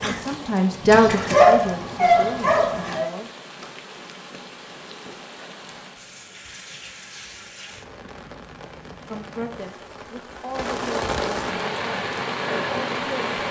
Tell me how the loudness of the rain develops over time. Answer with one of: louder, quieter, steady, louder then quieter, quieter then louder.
louder.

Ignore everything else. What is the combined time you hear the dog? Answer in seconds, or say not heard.
3 s.